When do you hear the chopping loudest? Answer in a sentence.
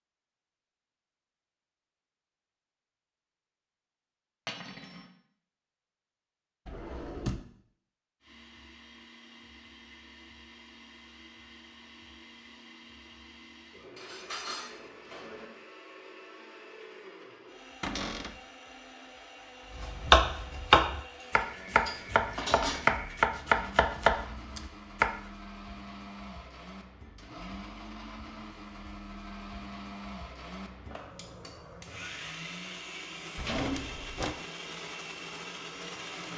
The volume of the chopping peaks at 20 seconds.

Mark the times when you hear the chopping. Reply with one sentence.
The chopping can be heard from 19.8 to 25.1 s.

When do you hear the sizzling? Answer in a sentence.
The sizzling can't be heard in this clip.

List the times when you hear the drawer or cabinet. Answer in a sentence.
You can hear the drawer or cabinet from 6.7 to 7.5 s, from 17.8 to 18.4 s and from 33.4 to 34.4 s.